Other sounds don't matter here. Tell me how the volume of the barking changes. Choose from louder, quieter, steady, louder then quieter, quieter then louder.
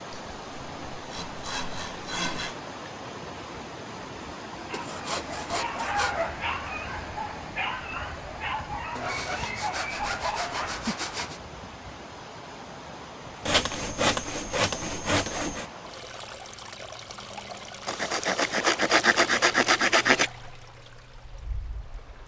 steady.